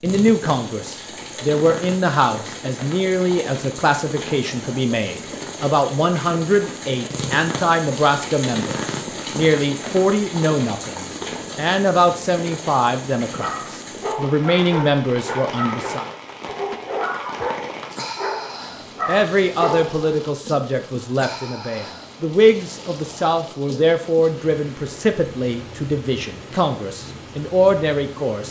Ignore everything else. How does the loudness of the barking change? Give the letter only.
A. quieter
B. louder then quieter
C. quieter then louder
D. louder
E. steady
E.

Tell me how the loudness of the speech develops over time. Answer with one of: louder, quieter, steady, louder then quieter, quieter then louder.
steady.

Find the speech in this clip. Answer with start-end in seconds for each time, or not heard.
0.0-16.1, 19.1-28.4.